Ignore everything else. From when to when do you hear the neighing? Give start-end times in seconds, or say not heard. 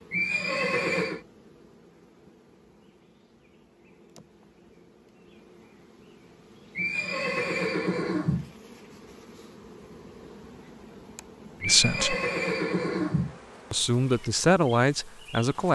0.1-1.2, 6.8-8.5, 11.6-13.4.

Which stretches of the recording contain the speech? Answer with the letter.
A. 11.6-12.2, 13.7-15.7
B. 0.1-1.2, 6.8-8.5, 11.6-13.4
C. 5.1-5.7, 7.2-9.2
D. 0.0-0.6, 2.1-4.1
A.